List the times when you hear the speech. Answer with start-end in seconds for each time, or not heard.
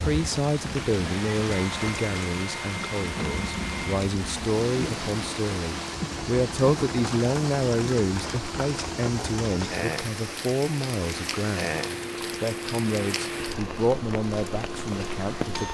0.1-15.6.